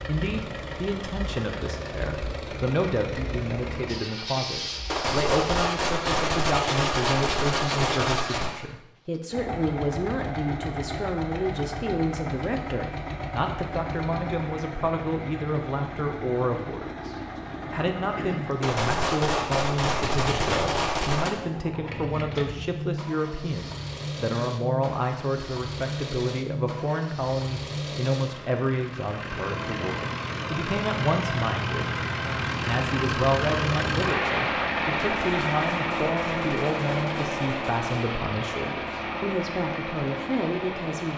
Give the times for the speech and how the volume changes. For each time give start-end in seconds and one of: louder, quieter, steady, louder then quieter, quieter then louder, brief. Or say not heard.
0.1-41.1 steady.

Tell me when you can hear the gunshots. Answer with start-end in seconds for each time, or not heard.
4.8-8.7, 18.6-21.3, 35.1-37.9.